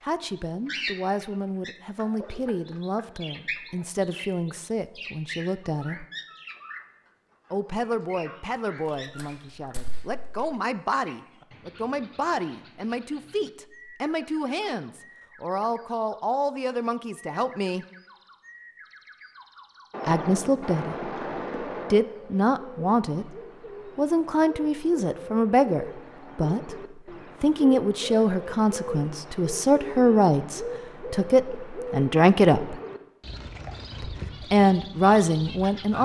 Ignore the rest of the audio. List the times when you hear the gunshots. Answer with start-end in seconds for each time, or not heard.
8.8-10.3, 19.9-21.9.